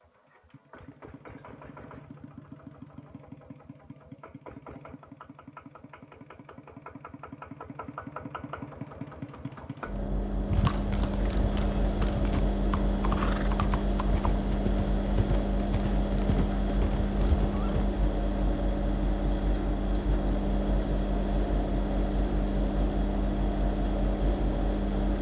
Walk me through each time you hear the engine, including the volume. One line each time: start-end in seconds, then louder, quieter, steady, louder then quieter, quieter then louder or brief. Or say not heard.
0.0-25.1 louder.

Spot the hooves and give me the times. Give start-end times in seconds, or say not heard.
10.4-17.9.